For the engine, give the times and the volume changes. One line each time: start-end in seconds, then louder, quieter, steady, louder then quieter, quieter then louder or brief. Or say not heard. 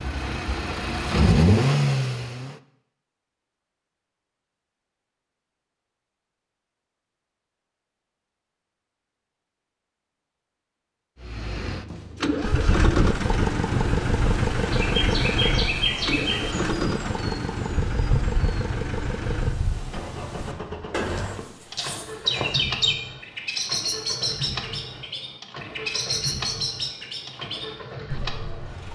0.0-2.5 brief
11.2-28.9 quieter.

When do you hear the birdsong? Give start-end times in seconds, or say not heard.
12.4-28.9.